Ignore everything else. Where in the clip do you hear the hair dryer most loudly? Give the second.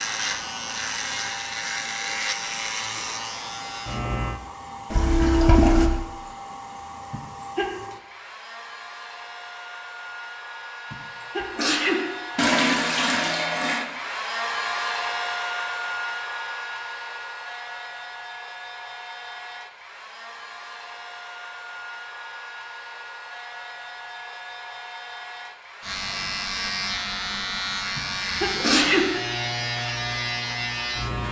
15 s.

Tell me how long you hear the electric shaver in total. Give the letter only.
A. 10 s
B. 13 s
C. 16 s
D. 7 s
A.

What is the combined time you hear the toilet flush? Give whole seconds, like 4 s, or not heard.
3 s.